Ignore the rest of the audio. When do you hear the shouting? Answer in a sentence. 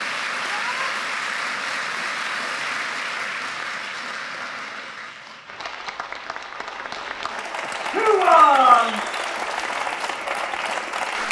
You can hear the shouting from 0.4 to 0.9 s and from 7.9 to 9.0 s.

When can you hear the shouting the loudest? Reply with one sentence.
The loudest moment of the shouting is at 9 seconds.